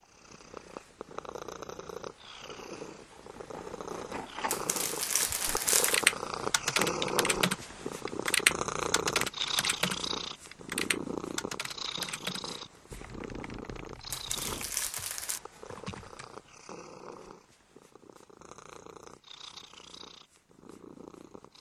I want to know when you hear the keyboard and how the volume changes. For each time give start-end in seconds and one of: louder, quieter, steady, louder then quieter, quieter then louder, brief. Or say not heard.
5.5-16.3 quieter.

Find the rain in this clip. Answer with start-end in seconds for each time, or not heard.
not heard.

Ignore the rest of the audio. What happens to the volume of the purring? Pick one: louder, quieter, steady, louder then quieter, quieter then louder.
louder then quieter.